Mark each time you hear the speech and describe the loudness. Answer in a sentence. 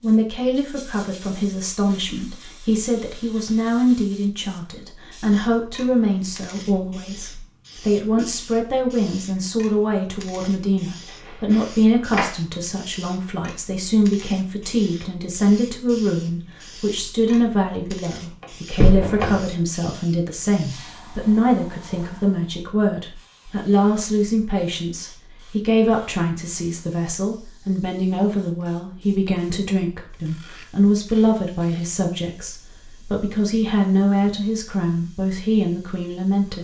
You can hear the speech from 0.0 to 36.5 s, at a steady volume.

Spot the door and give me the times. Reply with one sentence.
You can hear the door from 11.2 to 12.3 s and from 18.4 to 19.4 s.